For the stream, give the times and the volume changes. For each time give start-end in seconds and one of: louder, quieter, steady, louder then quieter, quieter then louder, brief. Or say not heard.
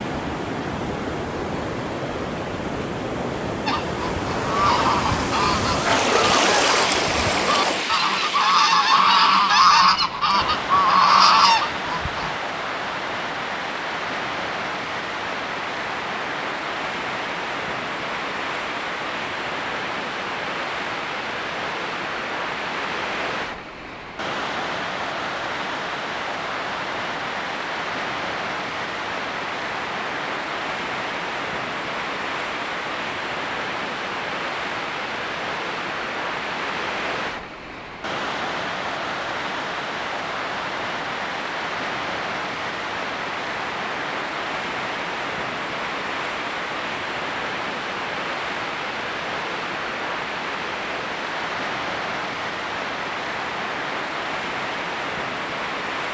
0.0-56.0 steady.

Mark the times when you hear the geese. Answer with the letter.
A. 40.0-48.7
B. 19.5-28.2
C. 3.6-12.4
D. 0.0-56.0
C.